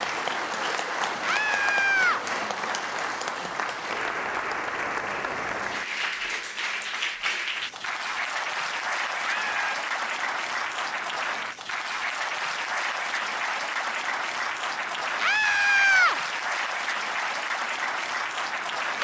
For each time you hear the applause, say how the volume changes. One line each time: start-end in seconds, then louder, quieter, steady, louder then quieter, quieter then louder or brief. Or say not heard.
0.0-19.0 steady.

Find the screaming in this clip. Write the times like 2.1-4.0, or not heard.
1.2-2.2, 9.2-9.8, 15.2-16.1.